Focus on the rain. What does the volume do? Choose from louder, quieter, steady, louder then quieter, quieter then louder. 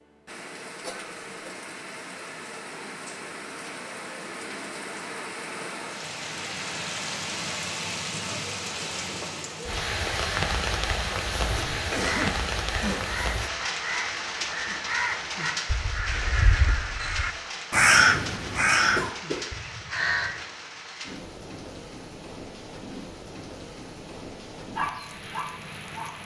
louder then quieter.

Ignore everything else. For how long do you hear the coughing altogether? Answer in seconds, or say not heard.
4 s.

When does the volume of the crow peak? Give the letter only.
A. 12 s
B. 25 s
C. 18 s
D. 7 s
C.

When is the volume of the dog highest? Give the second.
25 s.